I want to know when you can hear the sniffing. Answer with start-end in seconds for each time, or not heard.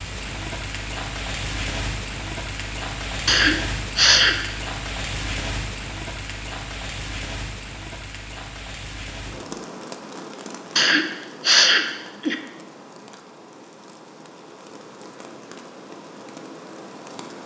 3.2-4.3, 10.8-12.3.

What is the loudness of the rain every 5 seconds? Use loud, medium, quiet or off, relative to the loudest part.
loud, loud, medium, medium.